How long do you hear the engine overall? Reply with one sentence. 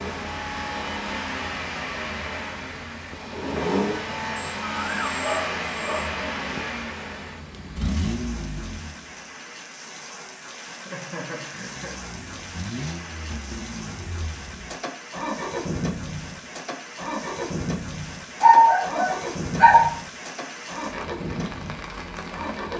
You can hear the engine for 20 seconds altogether.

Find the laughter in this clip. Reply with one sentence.
The laughter can be heard from 10.1 to 12.0 s.